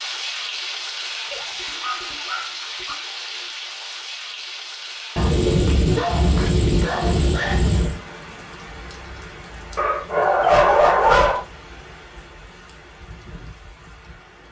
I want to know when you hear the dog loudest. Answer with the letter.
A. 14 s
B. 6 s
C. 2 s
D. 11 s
D.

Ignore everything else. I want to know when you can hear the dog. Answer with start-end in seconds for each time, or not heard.
1.3-3.0, 5.2-8.0, 9.8-11.4.